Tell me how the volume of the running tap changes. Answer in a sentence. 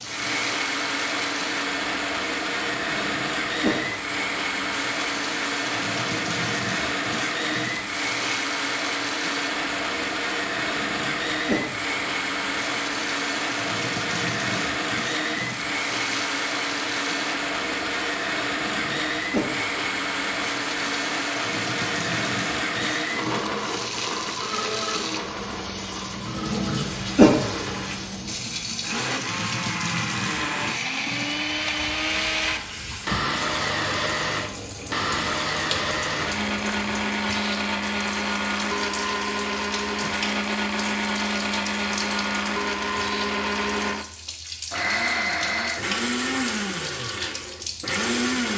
The loudness of the running tap goes up, then down.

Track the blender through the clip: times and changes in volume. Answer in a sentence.
You can hear the blender from 0.0 to 48.5 s, at a steady volume.